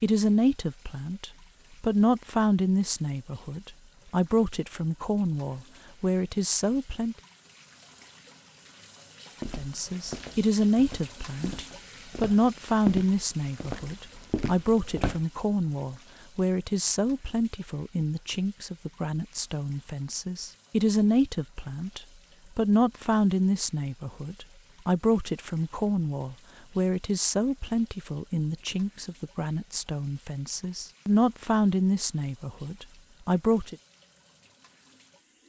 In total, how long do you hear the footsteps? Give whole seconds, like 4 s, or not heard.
6 s.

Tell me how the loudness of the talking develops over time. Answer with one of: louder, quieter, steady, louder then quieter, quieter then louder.
steady.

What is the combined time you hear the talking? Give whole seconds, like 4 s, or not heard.
31 s.